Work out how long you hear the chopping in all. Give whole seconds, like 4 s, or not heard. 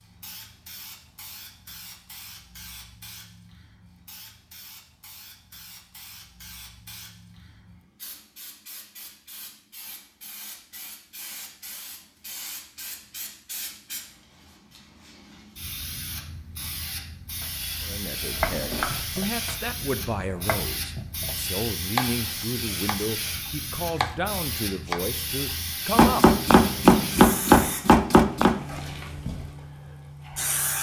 11 s.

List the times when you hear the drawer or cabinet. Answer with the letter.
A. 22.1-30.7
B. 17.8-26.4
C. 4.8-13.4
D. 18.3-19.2
D.